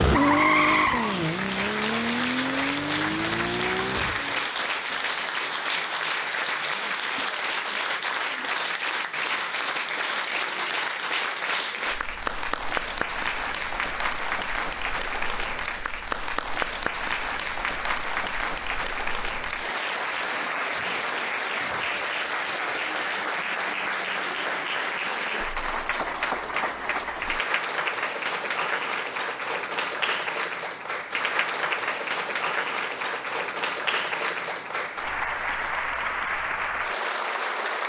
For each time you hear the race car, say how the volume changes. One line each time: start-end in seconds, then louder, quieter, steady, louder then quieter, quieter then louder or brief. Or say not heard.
0.0-4.5 quieter.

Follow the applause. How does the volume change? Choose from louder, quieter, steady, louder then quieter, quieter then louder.
steady.